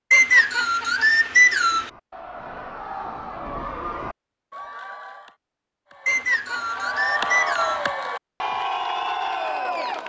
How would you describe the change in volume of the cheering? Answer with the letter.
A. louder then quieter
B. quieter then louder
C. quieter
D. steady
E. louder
E.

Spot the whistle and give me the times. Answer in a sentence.
The whistle can be heard from 0.1 to 1.9 s and from 6.0 to 7.8 s.